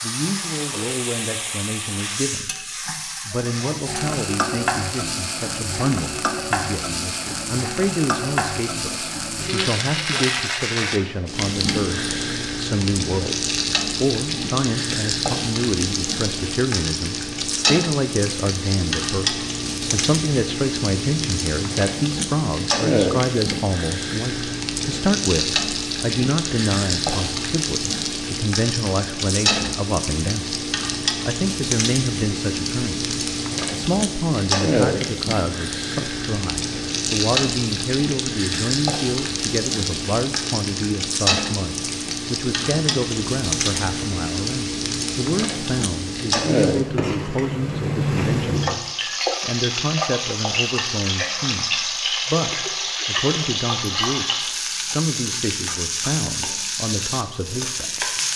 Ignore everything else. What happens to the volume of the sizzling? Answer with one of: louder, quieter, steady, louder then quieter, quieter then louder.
steady.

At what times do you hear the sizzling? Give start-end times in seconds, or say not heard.
0.0-58.3.